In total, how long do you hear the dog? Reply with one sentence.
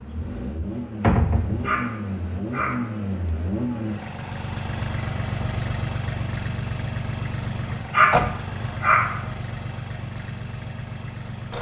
You can hear the dog for 3 seconds altogether.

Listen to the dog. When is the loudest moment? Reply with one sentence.
The volume of the dog peaks at 8 seconds.